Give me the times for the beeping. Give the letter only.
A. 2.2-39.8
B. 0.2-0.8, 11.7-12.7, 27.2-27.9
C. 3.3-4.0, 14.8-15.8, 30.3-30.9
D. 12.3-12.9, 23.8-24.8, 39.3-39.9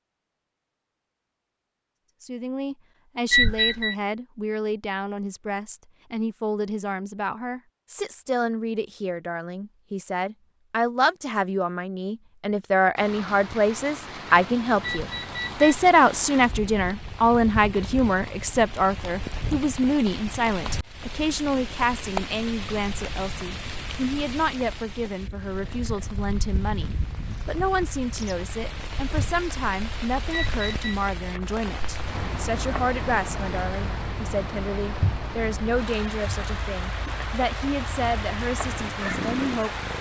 C.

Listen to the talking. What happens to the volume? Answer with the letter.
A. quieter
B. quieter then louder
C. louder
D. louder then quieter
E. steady
D.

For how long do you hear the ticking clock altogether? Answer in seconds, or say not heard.
not heard.